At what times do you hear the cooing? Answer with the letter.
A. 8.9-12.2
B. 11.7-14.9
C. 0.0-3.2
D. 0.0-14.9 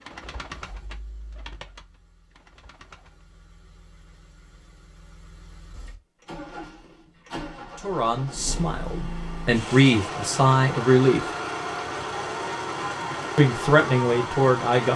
C.